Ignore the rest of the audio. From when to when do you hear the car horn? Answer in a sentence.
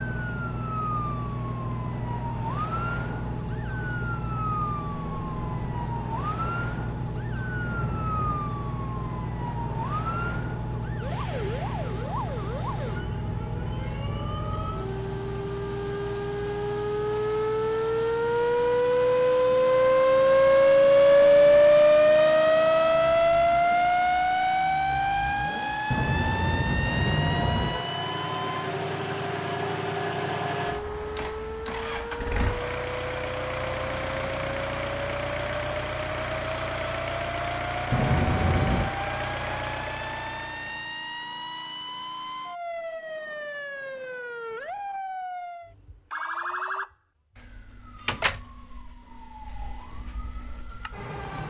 You can hear the car horn from 7.6 to 8.5 s, from 25.9 to 27.9 s and from 37.9 to 39.0 s.